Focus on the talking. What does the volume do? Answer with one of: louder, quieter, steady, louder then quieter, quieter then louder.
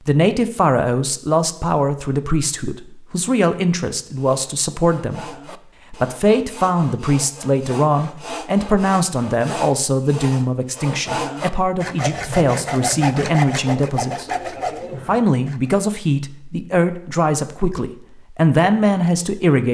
steady.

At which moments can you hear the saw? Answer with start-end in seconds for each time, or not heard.
4.2-15.7.